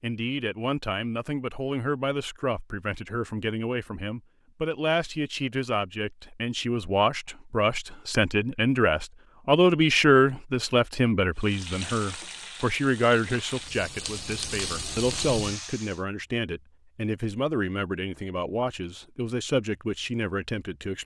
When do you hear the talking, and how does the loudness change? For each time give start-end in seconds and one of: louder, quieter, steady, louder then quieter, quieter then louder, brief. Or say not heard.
0.0-21.0 louder then quieter.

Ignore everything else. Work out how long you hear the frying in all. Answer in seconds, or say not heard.
5 s.